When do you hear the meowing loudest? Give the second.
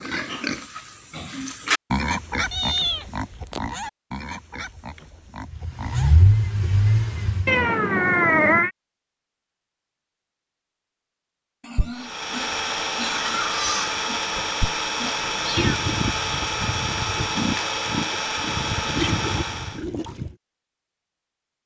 8 s.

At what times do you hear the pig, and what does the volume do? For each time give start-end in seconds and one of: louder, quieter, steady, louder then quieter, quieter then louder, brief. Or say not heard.
0.0-6.1 louder then quieter
11.6-20.4 steady.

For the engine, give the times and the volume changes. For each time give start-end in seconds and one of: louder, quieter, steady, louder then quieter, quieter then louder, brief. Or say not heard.
5.5-7.7 brief
11.9-19.9 steady.